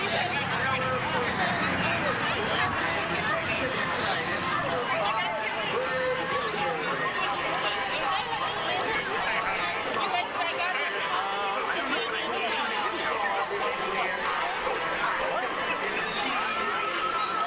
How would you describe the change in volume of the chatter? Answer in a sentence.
The volume of the chatter stays about the same.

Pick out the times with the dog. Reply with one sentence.
The dog can't be heard in this clip.